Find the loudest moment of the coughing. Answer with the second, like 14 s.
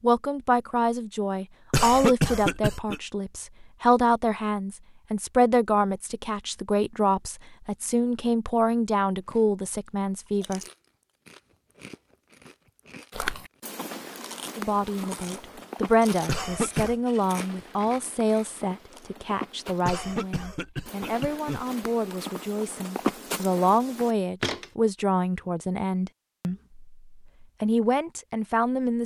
2 s.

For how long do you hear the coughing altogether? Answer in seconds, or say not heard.
4 s.